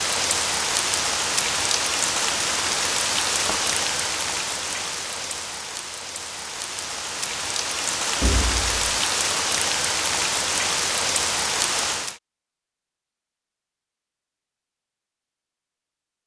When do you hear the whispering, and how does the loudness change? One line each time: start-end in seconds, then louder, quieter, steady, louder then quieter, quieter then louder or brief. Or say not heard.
not heard.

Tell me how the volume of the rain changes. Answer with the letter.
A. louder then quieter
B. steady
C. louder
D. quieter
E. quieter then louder
E.